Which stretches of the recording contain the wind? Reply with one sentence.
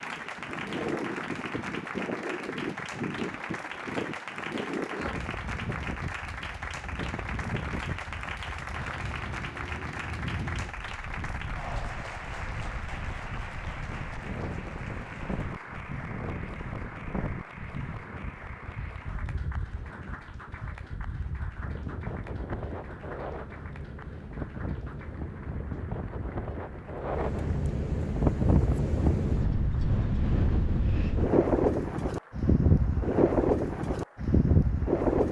You can hear the wind from 0.0 to 35.2 s.